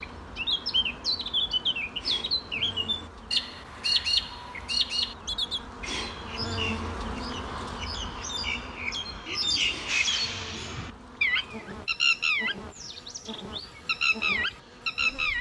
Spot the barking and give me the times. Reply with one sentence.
You can't hear the barking here.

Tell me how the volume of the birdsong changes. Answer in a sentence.
The loudness of the birdsong goes down, then up.